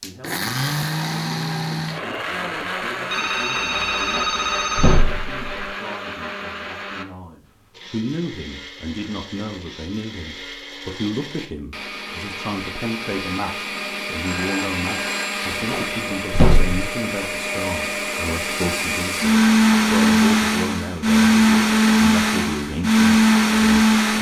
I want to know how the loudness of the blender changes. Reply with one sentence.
The volume of the blender goes down, then up.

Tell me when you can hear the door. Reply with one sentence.
The door can be heard from 4.1 to 5.7 s and from 15.5 to 16.8 s.